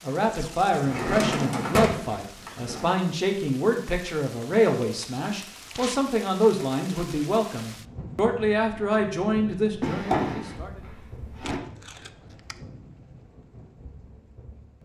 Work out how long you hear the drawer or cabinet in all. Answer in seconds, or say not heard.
4 s.